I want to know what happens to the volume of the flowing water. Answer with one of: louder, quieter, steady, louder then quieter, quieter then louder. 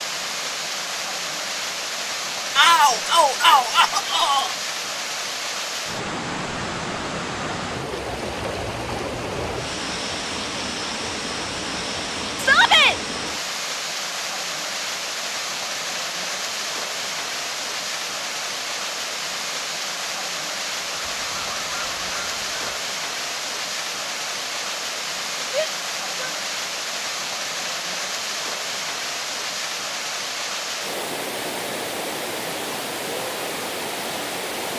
steady.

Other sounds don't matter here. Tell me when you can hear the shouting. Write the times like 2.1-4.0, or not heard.
2.5-4.5, 12.3-12.9, 25.5-26.3.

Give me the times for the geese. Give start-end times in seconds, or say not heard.
20.8-22.9.